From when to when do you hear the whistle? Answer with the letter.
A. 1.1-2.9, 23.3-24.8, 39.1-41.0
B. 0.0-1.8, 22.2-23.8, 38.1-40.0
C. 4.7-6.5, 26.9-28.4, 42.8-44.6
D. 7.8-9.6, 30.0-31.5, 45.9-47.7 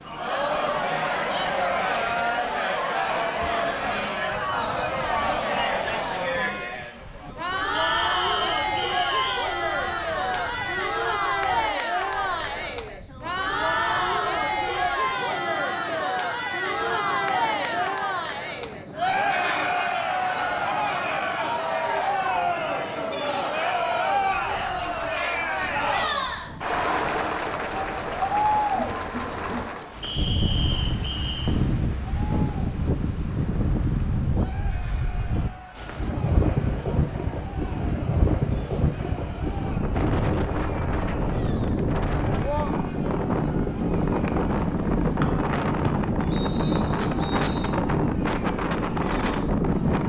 D.